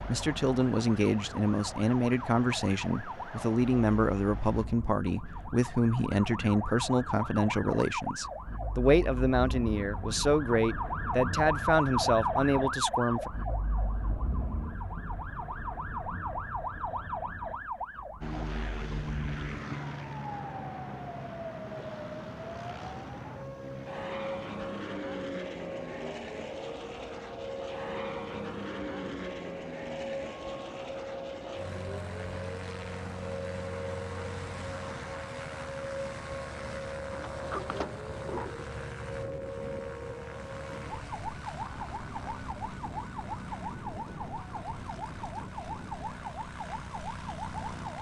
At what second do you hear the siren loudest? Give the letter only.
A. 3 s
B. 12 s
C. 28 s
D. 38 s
B.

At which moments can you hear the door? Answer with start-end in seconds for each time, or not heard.
37.1-38.7.